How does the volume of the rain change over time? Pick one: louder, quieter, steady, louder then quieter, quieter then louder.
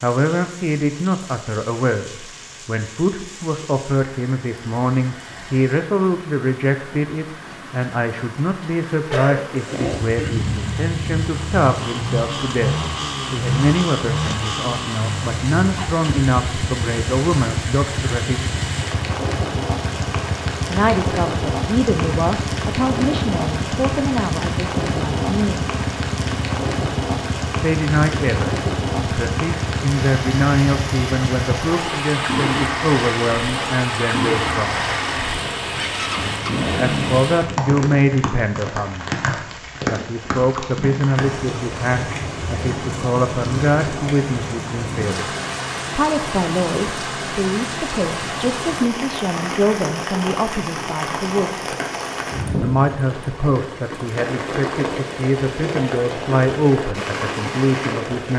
louder.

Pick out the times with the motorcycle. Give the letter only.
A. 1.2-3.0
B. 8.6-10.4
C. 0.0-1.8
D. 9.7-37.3
D.